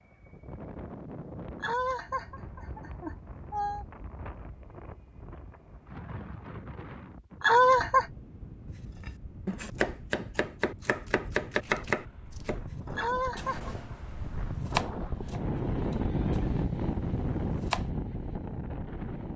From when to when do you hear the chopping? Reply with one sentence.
The chopping can be heard from 9.0 to 17.9 s.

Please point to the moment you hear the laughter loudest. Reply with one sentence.
The volume of the laughter peaks at 8 seconds.